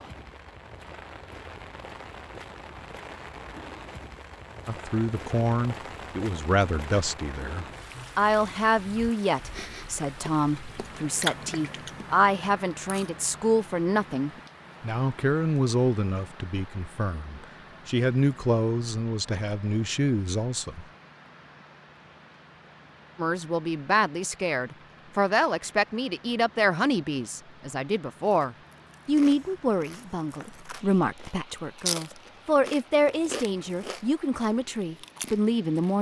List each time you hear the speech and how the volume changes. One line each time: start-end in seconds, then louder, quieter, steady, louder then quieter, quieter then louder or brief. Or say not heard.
4.7-20.9 steady
23.1-35.9 steady.